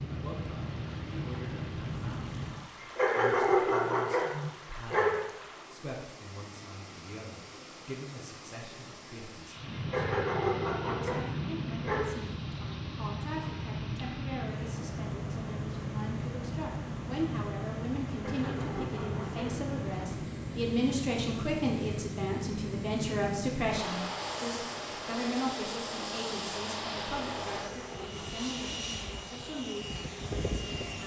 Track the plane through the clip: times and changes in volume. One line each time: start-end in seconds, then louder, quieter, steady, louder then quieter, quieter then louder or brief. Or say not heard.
0.0-2.7 brief
9.6-31.0 steady.